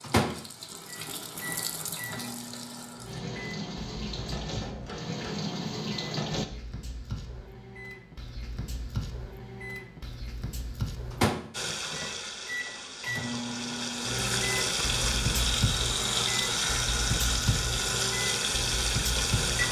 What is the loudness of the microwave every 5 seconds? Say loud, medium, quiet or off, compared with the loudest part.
loud, medium, loud, loud.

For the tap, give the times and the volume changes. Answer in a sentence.
You can hear the tap from 0.0 to 6.5 s, getting louder; and from 11.5 to 19.6 s, getting louder.